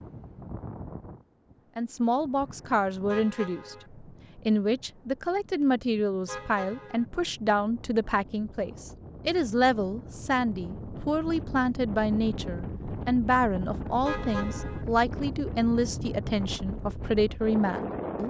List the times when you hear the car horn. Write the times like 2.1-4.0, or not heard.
3.0-3.9, 6.2-7.0, 14.1-14.8.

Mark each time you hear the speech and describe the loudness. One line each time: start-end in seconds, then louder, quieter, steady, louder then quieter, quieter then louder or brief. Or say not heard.
1.8-18.2 steady.